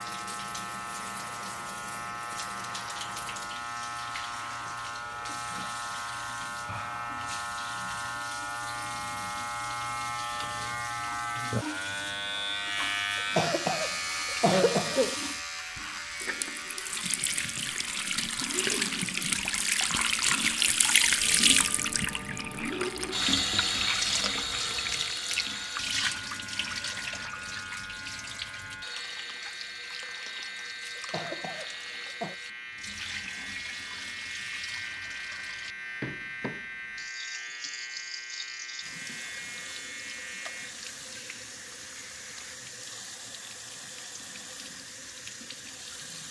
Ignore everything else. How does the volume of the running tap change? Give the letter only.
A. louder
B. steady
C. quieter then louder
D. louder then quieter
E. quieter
D.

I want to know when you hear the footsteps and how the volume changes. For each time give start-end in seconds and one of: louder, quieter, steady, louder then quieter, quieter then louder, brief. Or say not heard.
not heard.